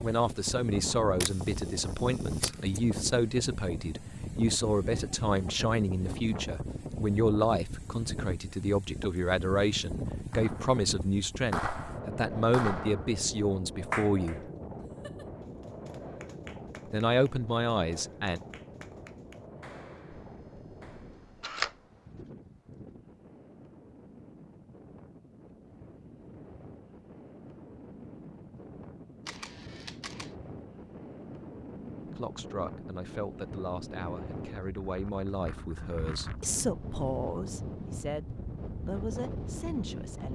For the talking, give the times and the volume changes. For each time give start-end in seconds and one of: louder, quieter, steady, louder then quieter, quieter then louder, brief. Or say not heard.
0.0-14.5 steady
16.9-18.4 brief
32.0-40.2 steady.